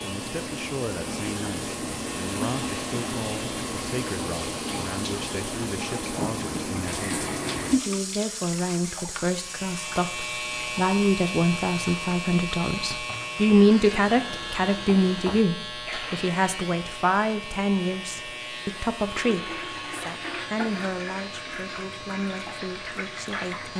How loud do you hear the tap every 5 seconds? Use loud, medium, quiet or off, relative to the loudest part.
loud, loud, medium, medium, medium.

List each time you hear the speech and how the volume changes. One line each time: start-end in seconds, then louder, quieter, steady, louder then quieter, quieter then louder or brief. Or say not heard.
0.0-23.7 louder then quieter.